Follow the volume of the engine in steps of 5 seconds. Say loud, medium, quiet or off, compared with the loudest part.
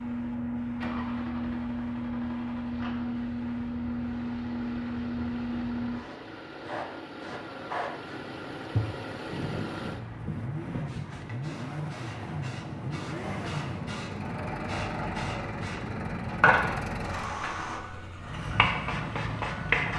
medium, loud, loud, loud.